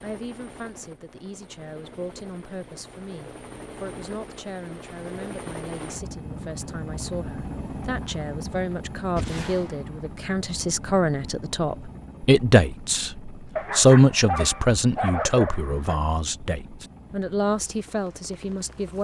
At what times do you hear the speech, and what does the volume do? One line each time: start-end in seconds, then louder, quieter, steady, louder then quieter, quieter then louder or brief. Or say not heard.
0.0-18.9 louder then quieter.